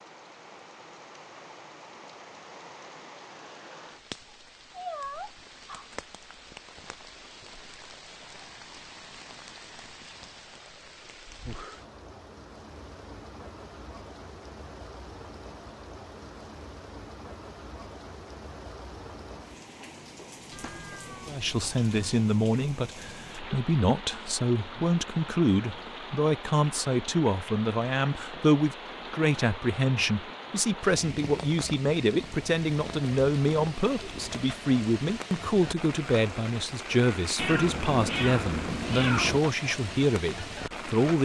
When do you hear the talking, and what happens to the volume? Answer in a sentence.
You can hear the talking from 21.2 to 41.2 s, at a steady volume.